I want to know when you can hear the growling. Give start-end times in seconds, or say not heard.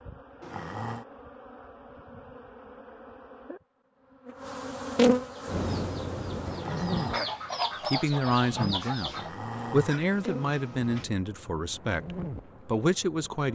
0.4-1.1, 6.5-7.3, 9.1-11.1.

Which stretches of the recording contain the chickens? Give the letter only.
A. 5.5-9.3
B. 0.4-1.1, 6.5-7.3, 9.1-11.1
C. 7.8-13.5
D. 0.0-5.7
A.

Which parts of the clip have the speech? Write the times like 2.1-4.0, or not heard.
7.8-13.5.